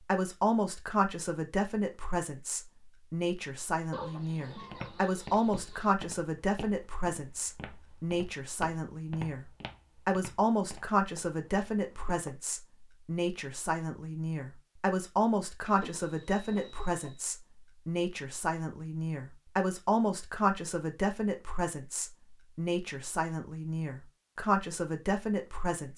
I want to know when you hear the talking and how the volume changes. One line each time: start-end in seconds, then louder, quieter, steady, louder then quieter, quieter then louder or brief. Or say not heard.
0.0-25.9 steady.